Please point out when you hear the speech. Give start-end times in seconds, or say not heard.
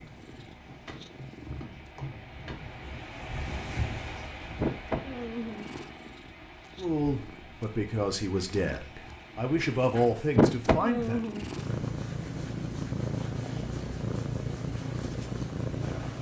6.8-11.3.